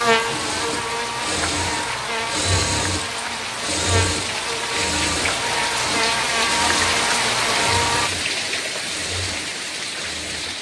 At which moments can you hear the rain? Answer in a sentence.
The rain can be heard from 0.0 to 10.5 s.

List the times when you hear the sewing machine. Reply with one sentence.
You can hear the sewing machine from 0.1 to 10.5 s.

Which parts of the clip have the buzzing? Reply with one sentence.
You can hear the buzzing from 0.0 to 8.1 s.